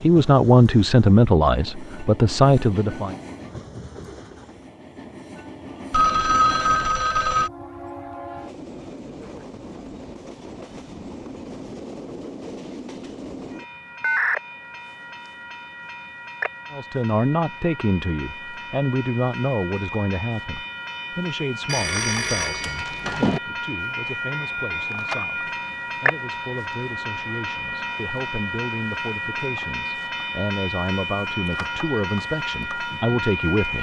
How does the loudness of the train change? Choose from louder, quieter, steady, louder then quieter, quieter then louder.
louder.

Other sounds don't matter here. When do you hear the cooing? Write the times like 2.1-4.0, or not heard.
not heard.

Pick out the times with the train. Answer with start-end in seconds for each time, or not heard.
0.0-33.7.